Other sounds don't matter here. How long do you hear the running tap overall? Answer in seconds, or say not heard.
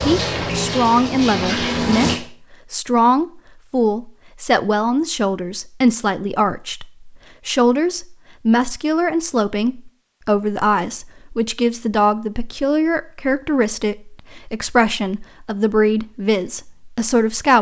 2 s.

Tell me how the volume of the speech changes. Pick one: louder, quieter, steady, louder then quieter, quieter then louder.
steady.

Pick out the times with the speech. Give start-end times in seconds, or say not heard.
0.1-17.5.